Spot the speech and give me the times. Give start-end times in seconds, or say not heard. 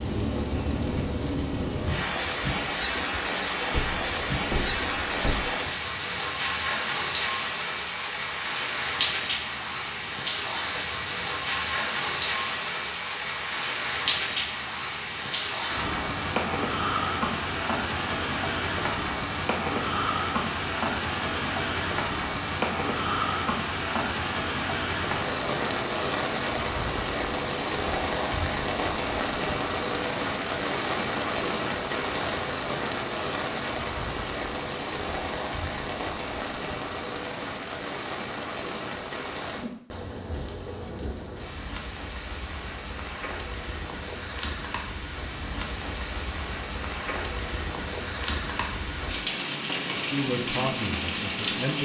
50.0-51.8.